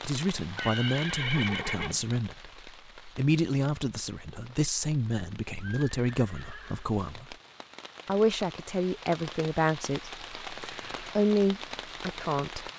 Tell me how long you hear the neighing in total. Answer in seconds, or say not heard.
4 s.